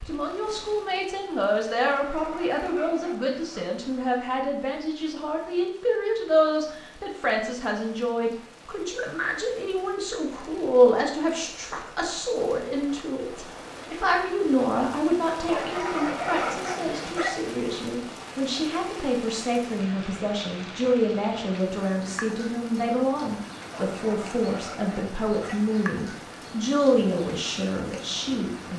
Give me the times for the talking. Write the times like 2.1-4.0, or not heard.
0.0-28.7.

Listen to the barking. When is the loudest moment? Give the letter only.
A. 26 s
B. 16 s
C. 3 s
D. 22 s
B.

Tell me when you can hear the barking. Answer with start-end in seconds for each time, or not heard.
1.9-3.6, 15.4-17.4, 23.7-25.8.